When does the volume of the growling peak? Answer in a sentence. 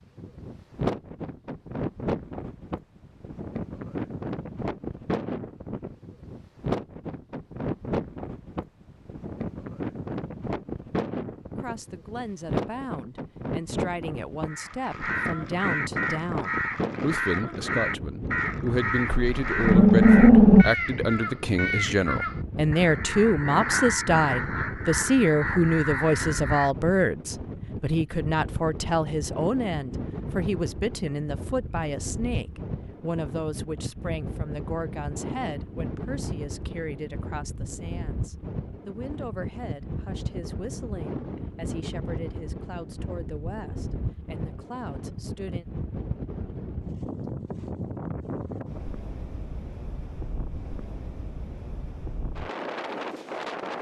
The volume of the growling peaks at 20 seconds.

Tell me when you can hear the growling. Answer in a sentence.
The growling can be heard from 19.1 to 20.6 s.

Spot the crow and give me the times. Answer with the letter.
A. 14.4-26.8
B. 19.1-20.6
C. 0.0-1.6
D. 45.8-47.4
A.